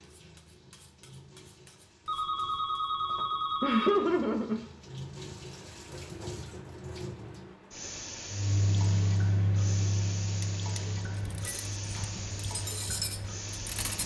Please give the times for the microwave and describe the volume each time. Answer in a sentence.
The microwave can be heard from 8.2 to 13.9 s, getting quieter.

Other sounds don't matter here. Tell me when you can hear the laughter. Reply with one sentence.
The laughter can be heard from 3.1 to 4.6 s.